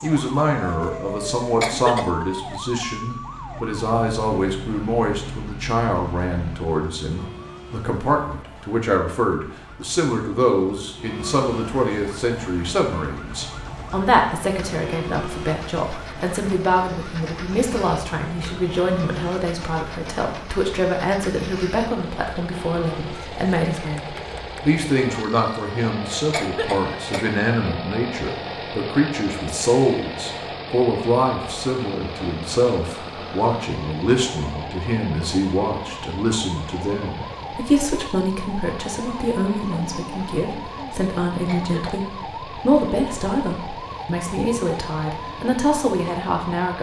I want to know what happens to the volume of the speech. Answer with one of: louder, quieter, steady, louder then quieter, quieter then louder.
steady.